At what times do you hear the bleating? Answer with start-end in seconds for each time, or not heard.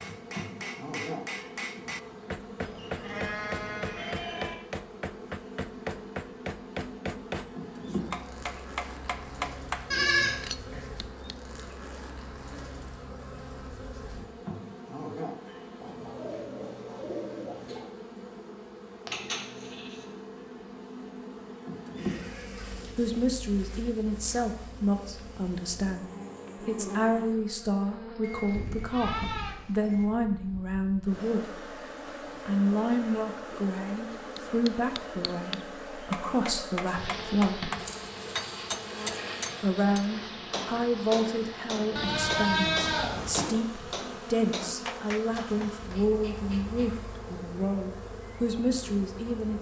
2.5-4.5, 9.9-10.8, 19.1-20.1, 28.2-30.1, 37.8-39.5, 42.0-43.5.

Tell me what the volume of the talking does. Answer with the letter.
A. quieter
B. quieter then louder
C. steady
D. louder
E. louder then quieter
C.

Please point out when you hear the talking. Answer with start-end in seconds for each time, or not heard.
22.9-31.8, 32.5-37.7, 39.6-49.5.